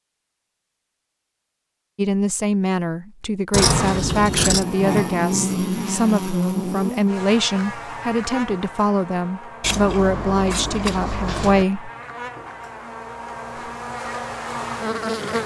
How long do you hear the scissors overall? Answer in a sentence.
The scissors can be heard for 3 seconds in total.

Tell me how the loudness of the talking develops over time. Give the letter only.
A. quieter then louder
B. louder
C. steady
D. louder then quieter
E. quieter
C.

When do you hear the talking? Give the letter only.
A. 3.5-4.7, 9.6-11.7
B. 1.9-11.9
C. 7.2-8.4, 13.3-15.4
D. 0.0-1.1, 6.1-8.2
B.